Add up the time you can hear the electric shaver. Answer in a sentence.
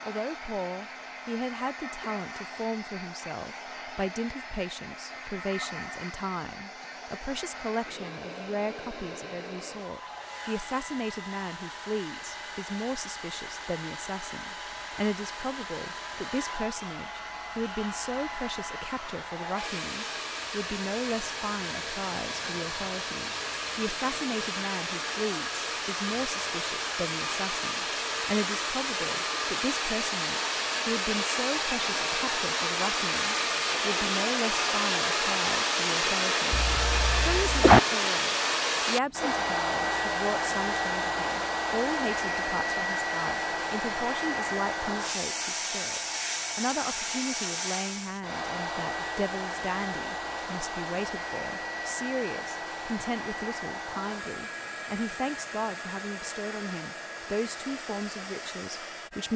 You can't hear the electric shaver here.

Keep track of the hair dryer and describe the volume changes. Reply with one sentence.
The loudness of the hair dryer goes up, then down.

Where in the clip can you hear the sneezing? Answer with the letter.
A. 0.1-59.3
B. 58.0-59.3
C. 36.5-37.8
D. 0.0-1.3
C.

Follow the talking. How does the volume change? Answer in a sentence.
The volume of the talking stays about the same.